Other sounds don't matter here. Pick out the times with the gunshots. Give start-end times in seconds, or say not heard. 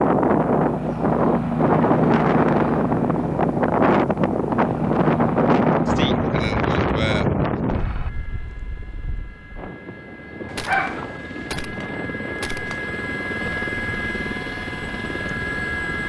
10.6-12.9.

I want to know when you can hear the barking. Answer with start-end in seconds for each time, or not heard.
10.4-11.5.